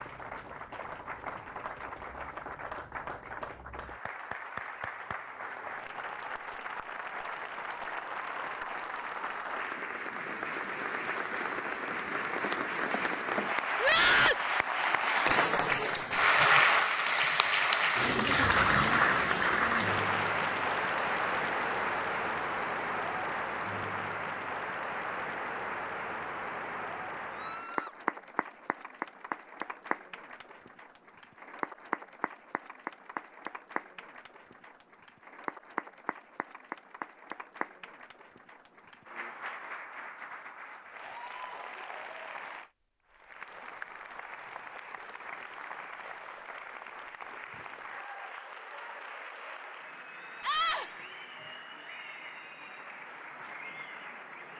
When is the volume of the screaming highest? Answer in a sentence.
The loudest moment of the screaming is at 14 seconds.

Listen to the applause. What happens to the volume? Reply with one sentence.
The volume of the applause goes up, then down.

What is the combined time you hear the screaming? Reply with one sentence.
You can hear the screaming for 2 seconds altogether.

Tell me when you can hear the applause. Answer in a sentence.
You can hear the applause from 0.0 to 54.5 s.